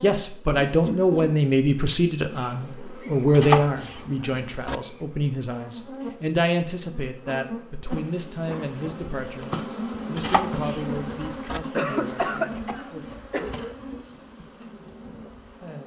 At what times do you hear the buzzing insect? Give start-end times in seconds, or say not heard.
0.0-15.8.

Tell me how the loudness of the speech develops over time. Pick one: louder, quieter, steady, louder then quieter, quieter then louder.
quieter.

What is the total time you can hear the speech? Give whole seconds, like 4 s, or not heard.
13 s.